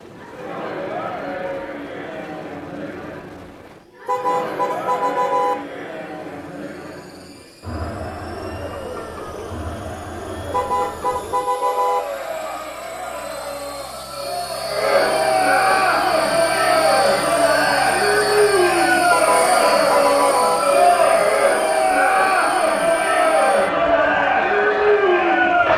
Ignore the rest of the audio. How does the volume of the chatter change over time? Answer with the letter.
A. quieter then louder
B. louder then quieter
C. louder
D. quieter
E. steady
C.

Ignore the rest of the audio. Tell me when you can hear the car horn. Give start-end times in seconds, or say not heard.
4.0-5.5, 10.5-12.0, 19.1-20.6.